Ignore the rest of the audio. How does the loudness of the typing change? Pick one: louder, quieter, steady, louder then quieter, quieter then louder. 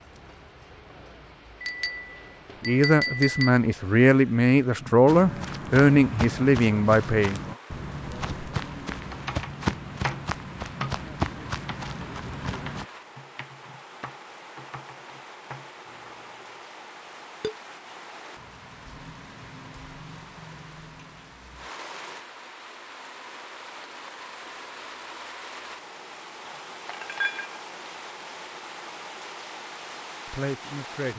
quieter.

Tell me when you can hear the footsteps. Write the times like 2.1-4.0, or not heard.
5.0-12.8.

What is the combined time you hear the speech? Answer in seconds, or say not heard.
6 s.